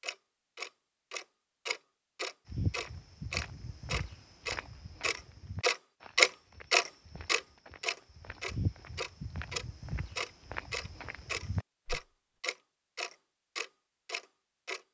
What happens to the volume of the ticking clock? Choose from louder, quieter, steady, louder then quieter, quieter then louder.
louder then quieter.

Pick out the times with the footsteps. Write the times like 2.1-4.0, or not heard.
2.5-12.0.